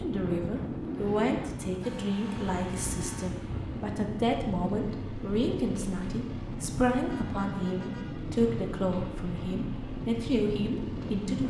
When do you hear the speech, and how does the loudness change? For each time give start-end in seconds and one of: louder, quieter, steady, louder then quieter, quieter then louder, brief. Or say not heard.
0.0-11.4 steady.